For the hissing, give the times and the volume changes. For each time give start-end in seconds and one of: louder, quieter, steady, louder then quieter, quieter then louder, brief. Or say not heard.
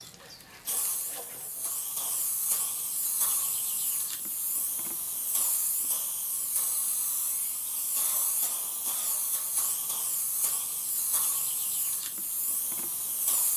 0.0-13.5 steady.